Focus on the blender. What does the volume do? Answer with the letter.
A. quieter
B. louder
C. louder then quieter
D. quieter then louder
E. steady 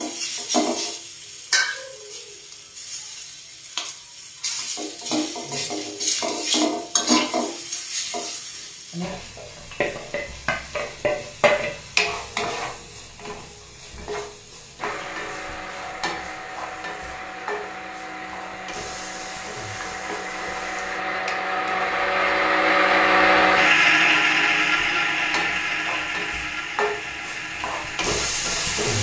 C.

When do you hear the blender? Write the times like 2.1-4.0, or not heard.
14.8-28.9.